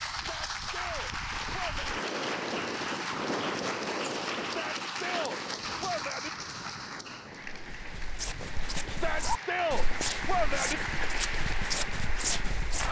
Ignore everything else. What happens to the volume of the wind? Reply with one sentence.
The volume of the wind goes up, then down.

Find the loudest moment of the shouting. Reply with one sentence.
The volume of the shouting peaks at 10 seconds.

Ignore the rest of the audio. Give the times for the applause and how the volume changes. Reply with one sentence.
The applause can be heard from 0.0 to 12.8 s, getting quieter then louder.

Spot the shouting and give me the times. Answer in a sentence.
The shouting can be heard from 0.1 to 1.8 s, from 4.4 to 6.3 s and from 8.8 to 10.8 s.